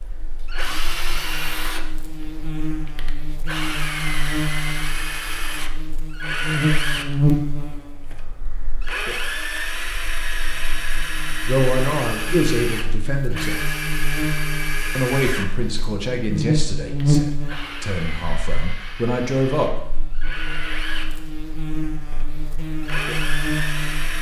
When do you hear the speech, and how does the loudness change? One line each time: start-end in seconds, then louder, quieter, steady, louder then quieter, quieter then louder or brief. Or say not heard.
11.4-13.7 brief
14.9-19.7 quieter then louder.